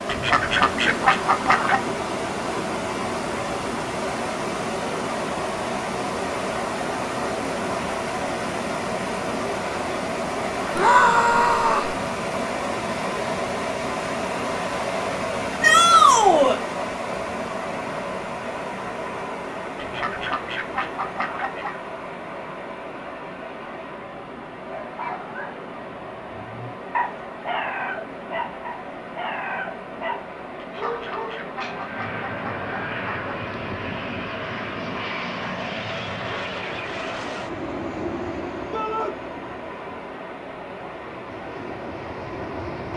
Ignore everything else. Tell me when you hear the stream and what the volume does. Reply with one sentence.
You can hear the stream from 0.0 to 42.9 s, getting quieter.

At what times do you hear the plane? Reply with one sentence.
You can hear the plane from 31.6 to 42.9 s.